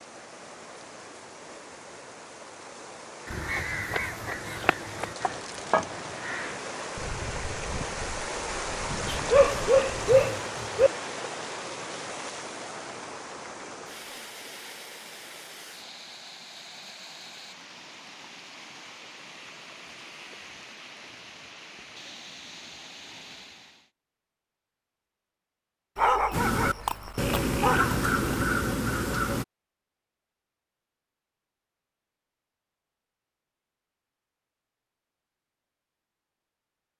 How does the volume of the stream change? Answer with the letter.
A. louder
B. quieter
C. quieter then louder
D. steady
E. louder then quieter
E.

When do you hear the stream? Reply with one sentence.
The stream can be heard from 0.0 to 23.9 s.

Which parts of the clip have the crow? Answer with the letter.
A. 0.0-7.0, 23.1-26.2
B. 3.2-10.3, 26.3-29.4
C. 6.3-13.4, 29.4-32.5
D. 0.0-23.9
B.